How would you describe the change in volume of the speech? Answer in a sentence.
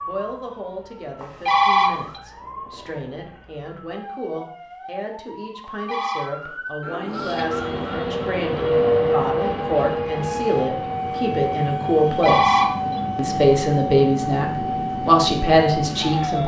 The volume of the speech goes up.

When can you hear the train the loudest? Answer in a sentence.
The volume of the train peaks at 9 seconds.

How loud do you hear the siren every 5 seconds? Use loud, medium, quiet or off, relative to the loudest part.
quiet, medium, loud, loud.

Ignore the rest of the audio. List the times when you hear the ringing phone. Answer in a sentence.
The ringing phone can be heard from 1.2 to 2.2 s, from 5.6 to 6.3 s and from 11.9 to 13.0 s.